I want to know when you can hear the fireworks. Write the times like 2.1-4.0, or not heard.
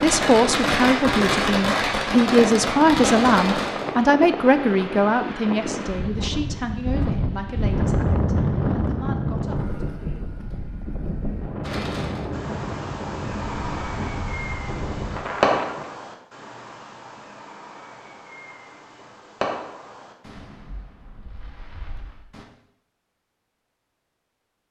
0.0-3.9, 11.6-22.4.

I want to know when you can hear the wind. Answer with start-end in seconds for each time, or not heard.
0.0-15.9.